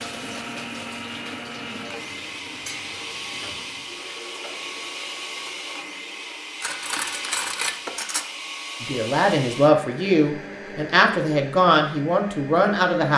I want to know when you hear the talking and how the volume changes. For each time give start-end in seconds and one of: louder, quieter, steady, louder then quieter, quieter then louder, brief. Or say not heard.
8.8-13.1 steady.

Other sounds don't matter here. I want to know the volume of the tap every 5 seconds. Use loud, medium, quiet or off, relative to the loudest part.
loud, medium, off.